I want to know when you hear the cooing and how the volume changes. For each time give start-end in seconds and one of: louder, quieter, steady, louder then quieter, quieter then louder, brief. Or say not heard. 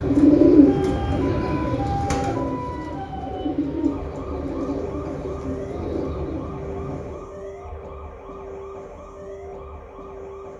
0.0-7.2 quieter.